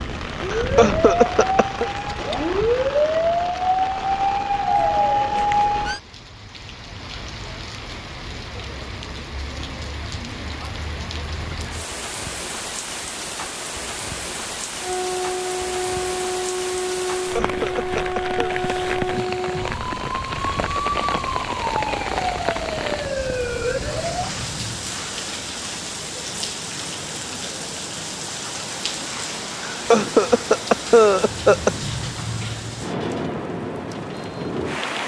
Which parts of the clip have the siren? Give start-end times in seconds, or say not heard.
0.0-6.0, 14.8-24.3.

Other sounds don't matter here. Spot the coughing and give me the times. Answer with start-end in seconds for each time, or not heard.
0.5-1.9, 17.1-18.6, 29.7-31.7.